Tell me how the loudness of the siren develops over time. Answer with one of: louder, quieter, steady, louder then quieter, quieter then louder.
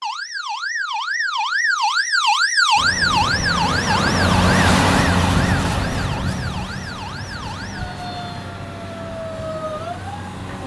quieter.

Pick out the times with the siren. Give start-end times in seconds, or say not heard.
0.0-10.6.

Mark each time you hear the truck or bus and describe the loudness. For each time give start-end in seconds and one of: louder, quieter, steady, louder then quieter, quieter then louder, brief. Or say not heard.
2.8-10.6 quieter.